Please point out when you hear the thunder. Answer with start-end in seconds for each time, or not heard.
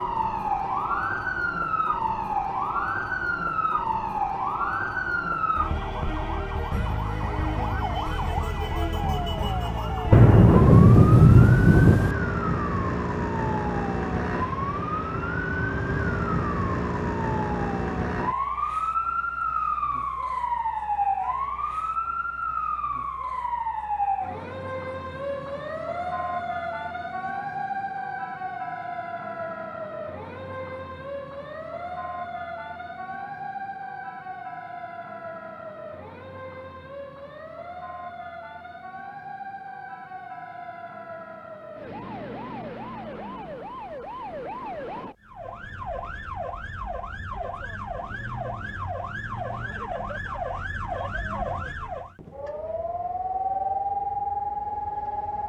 10.1-12.2.